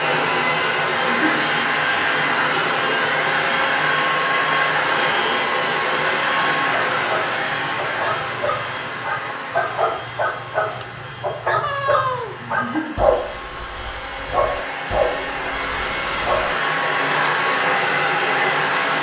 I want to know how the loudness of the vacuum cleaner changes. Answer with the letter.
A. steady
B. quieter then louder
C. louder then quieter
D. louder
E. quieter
B.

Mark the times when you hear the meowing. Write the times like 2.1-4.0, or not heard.
11.6-12.3.